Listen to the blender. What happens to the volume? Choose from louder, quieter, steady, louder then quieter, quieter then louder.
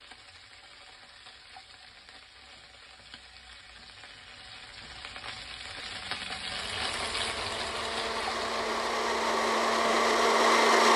louder.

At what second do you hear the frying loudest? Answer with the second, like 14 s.
7 s.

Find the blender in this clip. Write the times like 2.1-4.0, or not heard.
6.5-10.9.